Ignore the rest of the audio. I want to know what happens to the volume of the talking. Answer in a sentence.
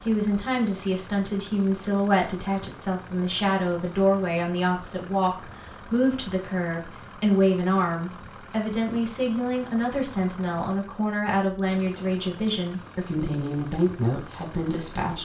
The loudness of the talking stays about the same.